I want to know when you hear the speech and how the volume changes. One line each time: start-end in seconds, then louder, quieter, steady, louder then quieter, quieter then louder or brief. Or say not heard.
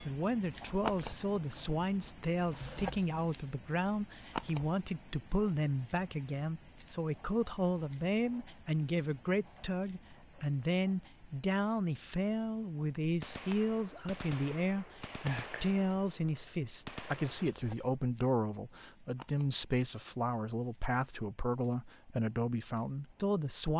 0.1-23.7 steady.